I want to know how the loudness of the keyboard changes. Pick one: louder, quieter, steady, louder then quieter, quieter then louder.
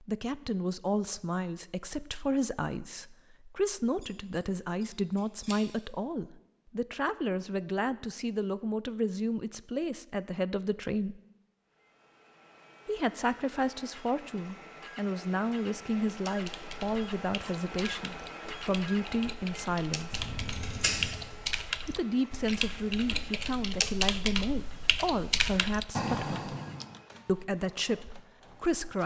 louder.